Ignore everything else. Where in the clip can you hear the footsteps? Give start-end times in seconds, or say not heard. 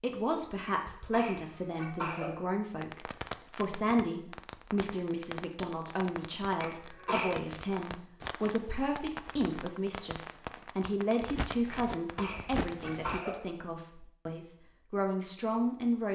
11.2-13.2.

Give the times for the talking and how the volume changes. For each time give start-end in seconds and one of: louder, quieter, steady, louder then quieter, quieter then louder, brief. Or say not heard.
0.0-16.1 steady.